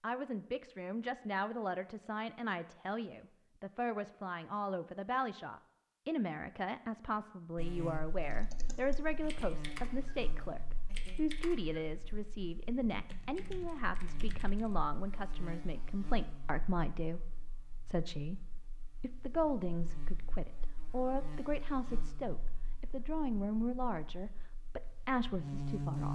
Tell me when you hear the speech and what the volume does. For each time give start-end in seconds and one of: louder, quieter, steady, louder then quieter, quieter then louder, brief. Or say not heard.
0.0-26.1 steady.